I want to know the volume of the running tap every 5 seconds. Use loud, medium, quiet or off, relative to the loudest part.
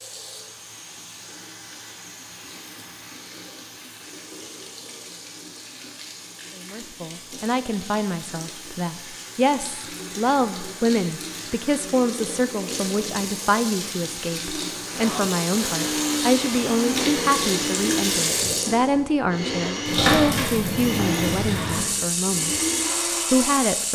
quiet, quiet, medium, loud, loud.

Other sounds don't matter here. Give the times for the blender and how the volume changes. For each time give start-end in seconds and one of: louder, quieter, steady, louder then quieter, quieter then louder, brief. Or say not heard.
14.9-23.8 steady.